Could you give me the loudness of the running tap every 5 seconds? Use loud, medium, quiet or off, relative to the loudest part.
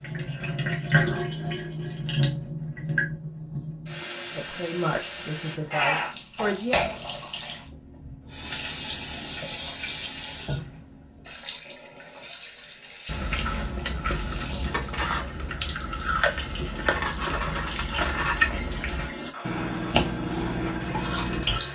loud, loud, medium, medium, loud.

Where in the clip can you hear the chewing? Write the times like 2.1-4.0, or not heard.
13.1-21.6.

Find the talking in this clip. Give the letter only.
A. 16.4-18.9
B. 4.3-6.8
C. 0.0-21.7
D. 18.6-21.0
B.